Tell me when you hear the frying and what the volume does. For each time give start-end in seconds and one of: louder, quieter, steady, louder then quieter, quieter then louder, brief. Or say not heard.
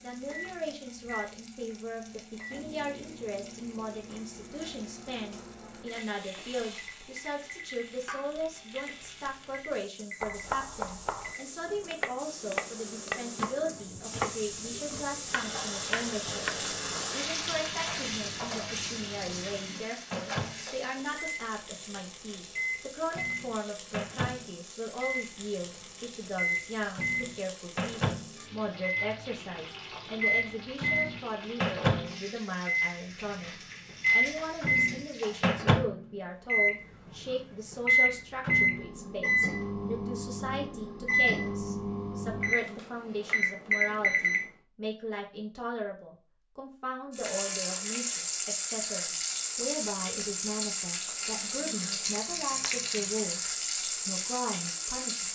0.0-35.6 louder then quieter
47.1-55.3 steady.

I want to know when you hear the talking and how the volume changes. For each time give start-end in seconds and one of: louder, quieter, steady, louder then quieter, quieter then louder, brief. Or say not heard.
0.0-16.4 steady
17.1-55.3 steady.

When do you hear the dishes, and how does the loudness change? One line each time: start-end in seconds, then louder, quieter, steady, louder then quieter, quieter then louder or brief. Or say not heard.
not heard.